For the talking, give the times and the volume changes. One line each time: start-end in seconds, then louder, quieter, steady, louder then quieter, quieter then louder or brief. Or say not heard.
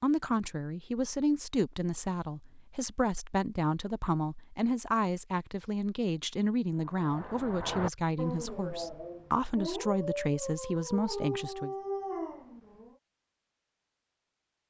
0.0-11.8 steady.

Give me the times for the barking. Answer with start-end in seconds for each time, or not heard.
6.8-12.9.